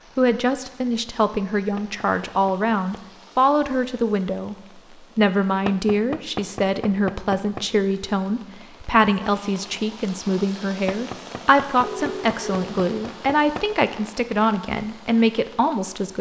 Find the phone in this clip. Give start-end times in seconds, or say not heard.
11.8-12.7.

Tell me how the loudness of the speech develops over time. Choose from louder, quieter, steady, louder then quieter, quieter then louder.
steady.